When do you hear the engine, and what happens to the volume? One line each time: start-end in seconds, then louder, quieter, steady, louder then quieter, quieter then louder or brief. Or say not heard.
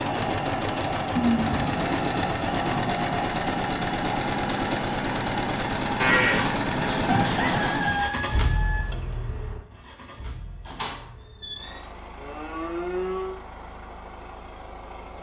0.0-15.1 quieter.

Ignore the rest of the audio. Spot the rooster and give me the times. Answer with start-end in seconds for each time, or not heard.
7.0-8.8.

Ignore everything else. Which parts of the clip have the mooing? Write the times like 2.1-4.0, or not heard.
1.1-3.0, 6.0-8.0, 10.7-13.3.